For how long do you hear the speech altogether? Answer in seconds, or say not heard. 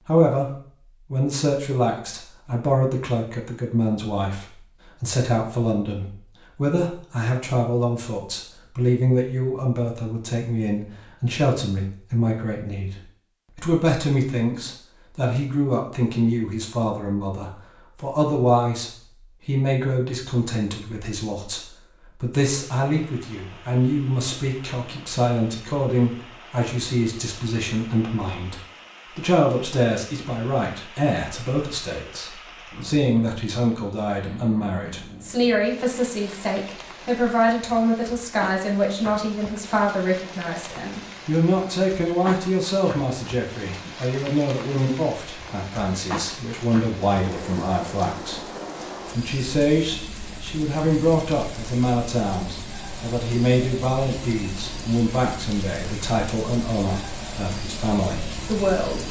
59 s.